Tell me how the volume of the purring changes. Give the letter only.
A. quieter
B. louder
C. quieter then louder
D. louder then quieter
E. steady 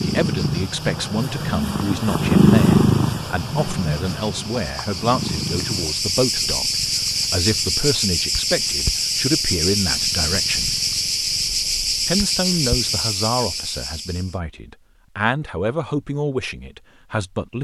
A.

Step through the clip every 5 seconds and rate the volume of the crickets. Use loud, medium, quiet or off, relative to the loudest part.
quiet, loud, loud, off.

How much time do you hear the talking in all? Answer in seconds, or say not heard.
16 s.